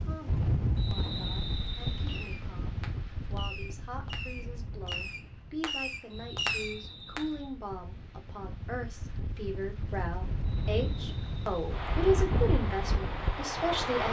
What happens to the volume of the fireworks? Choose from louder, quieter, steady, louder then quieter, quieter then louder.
louder.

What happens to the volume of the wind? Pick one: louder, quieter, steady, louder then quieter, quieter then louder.
quieter then louder.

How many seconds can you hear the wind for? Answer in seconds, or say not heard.
14 s.